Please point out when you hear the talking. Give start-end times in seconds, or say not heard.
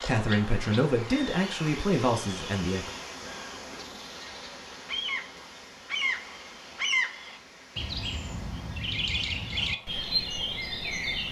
0.0-2.9.